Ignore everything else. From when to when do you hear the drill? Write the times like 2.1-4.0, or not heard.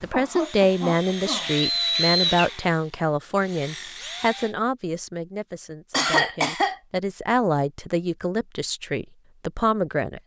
0.0-4.5.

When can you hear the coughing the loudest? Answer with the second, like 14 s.
6 s.